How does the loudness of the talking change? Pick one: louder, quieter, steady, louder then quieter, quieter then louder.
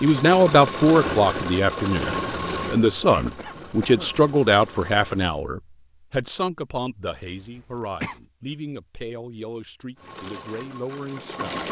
quieter.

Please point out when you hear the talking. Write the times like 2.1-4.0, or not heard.
0.0-11.6.